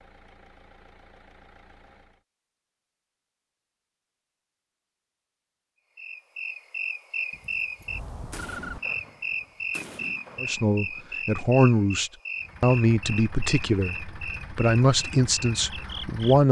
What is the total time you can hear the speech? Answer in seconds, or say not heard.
6 s.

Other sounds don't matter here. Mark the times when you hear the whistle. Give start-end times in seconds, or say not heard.
not heard.